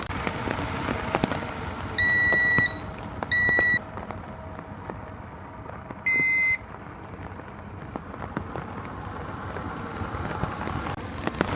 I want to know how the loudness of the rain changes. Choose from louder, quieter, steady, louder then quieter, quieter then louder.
quieter then louder.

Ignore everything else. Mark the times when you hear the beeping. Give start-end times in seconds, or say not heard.
1.9-3.8, 6.0-6.6.